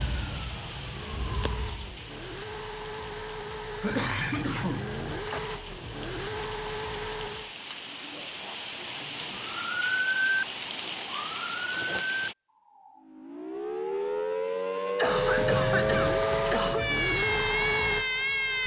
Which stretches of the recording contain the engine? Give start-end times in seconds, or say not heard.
0.0-7.5, 15.0-18.6.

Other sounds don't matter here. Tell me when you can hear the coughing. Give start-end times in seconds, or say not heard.
3.8-5.4, 14.9-16.9.